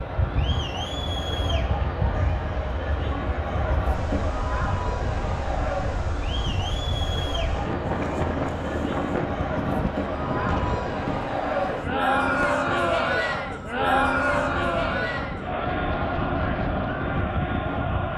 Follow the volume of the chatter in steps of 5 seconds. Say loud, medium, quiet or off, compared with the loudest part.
medium, medium, loud, medium.